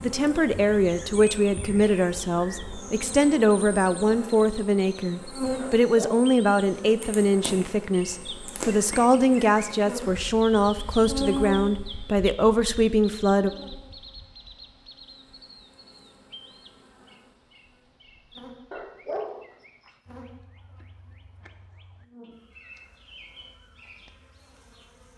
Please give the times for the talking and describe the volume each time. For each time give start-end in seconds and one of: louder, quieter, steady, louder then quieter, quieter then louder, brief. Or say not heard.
0.0-13.5 steady.